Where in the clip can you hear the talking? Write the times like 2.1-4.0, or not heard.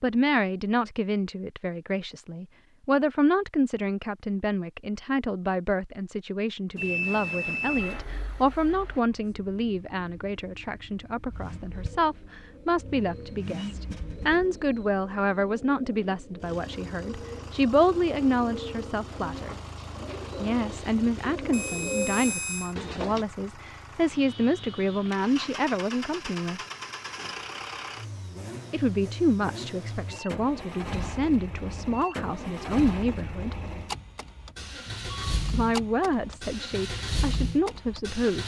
0.0-19.6, 20.4-26.6, 28.7-33.5, 35.5-38.4.